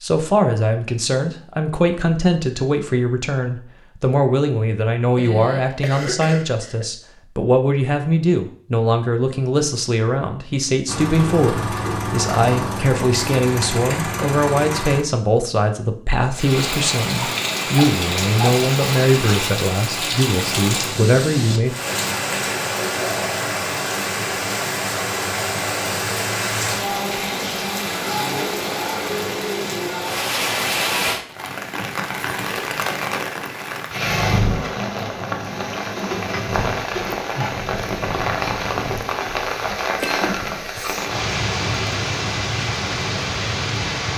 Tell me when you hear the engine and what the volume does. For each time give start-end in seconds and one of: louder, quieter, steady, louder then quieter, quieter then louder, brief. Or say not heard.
10.8-15.1 steady.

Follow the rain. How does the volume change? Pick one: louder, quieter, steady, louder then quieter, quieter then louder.
steady.